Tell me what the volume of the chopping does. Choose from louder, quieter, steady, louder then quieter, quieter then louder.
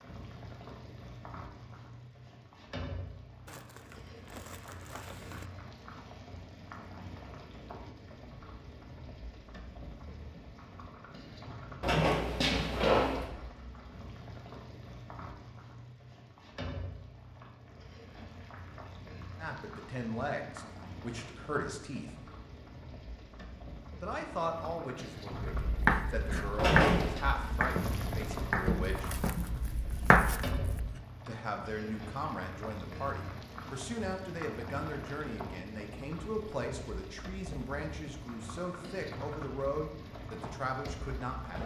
quieter then louder.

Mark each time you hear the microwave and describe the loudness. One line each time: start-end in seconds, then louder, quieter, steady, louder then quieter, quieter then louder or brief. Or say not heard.
not heard.